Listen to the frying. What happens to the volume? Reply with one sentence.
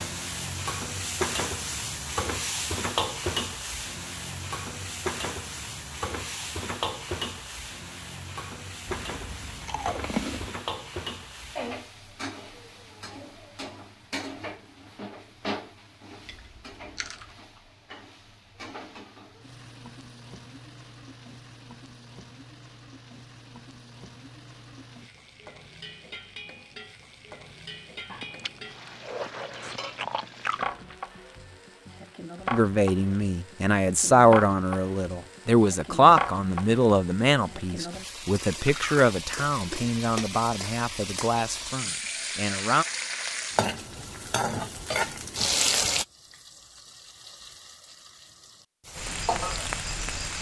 The volume of the frying goes down, then up.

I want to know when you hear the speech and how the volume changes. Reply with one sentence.
The speech can be heard from 32.5 to 42.9 s, getting quieter.